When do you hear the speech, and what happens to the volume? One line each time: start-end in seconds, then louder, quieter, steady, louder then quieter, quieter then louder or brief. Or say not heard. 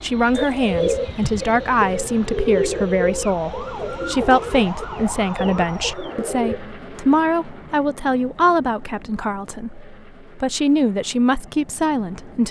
0.0-12.4 steady.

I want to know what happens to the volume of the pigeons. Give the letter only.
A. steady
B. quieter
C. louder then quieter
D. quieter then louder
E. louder
B.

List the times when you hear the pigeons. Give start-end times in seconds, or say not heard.
0.3-6.6.